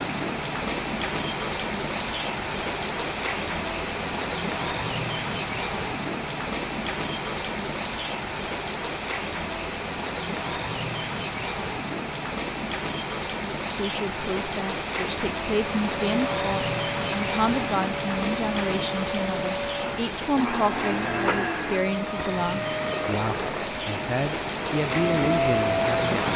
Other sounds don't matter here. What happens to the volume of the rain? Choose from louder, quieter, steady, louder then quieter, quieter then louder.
steady.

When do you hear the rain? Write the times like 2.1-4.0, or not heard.
0.0-26.3.